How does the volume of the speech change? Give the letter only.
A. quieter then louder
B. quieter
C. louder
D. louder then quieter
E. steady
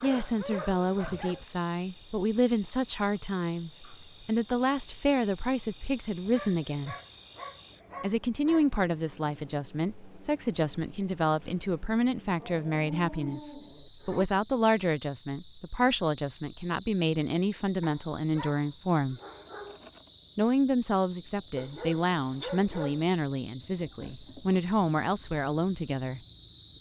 E.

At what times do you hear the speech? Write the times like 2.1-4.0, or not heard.
0.0-7.0, 8.0-19.2, 20.4-26.2.